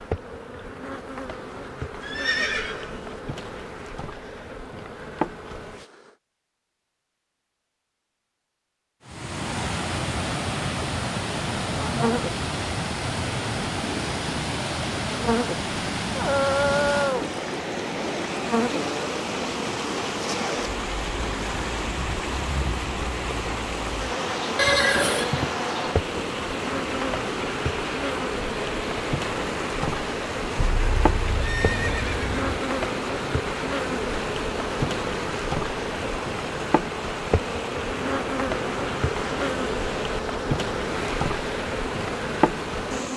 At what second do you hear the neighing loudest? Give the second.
25 s.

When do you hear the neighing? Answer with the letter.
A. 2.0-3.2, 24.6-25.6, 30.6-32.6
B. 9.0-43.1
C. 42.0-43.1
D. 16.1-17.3
A.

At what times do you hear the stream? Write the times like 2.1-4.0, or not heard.
9.0-43.1.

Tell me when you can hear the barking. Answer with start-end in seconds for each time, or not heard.
16.1-17.3.